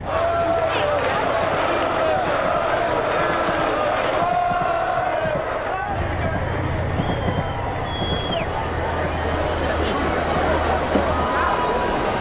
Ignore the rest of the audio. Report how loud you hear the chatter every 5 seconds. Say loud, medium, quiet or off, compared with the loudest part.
loud, medium, loud.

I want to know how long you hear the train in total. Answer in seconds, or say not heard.
12 s.